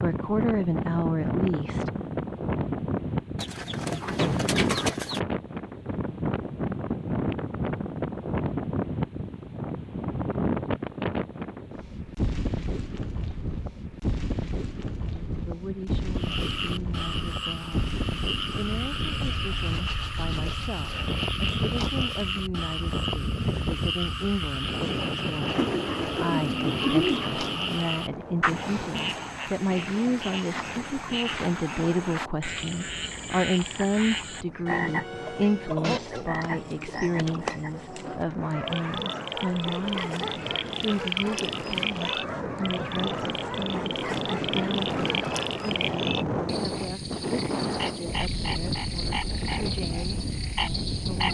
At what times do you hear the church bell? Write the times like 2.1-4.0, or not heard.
not heard.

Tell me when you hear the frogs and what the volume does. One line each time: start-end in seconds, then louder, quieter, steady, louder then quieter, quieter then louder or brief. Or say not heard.
16.1-51.2 steady.